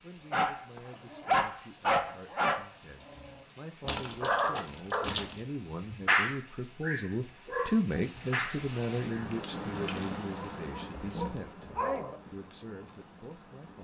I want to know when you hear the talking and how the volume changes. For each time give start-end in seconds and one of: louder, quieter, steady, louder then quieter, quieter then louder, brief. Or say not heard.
0.0-11.7 louder then quieter
12.3-13.7 brief.